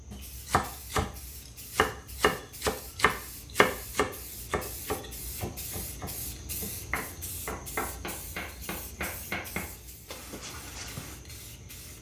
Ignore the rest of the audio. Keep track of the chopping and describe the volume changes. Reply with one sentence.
The volume of the chopping goes down.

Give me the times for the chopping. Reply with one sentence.
The chopping can be heard from 0.1 to 11.2 s.